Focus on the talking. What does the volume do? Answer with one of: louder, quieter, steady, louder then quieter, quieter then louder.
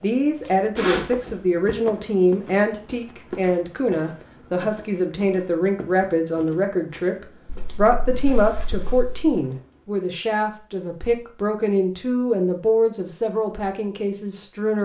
steady.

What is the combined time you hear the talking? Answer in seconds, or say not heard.
15 s.